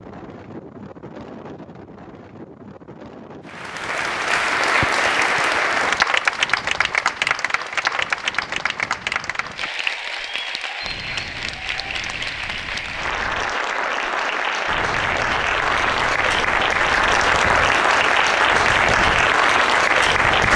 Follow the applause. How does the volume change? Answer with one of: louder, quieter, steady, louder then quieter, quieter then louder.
quieter then louder.